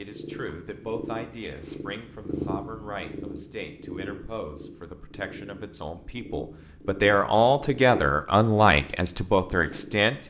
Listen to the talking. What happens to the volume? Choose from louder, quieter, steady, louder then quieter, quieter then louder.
louder.